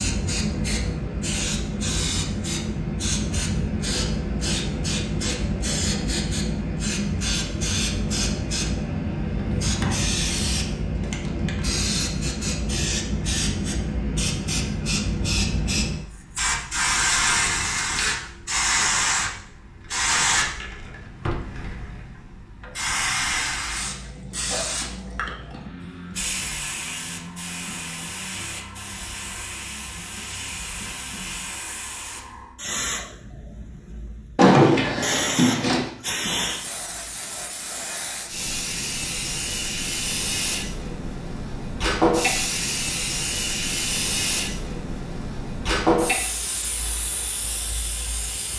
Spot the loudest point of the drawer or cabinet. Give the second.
35 s.